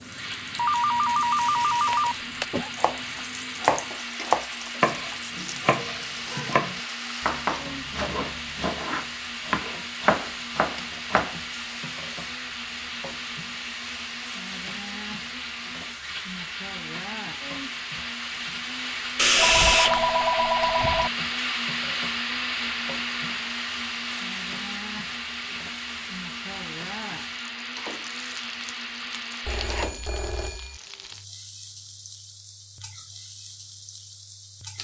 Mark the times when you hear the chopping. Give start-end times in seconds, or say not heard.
2.8-11.3.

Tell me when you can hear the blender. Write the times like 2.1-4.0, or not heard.
0.0-29.9.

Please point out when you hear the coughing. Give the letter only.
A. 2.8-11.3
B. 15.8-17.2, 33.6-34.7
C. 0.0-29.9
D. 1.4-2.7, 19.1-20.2
D.